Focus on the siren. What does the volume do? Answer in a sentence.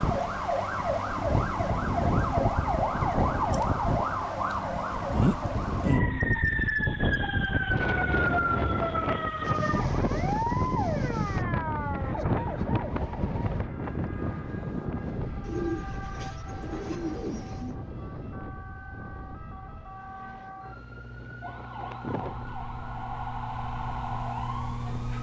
The volume of the siren goes down, then up.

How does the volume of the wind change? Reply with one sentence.
The volume of the wind goes down.